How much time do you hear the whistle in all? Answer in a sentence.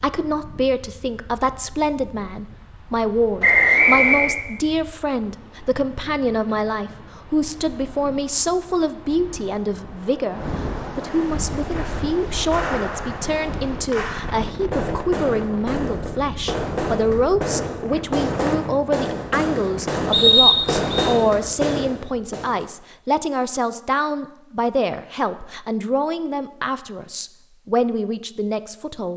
You can hear the whistle for 2 seconds altogether.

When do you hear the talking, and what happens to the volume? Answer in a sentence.
You can hear the talking from 0.0 to 29.1 s, at a steady volume.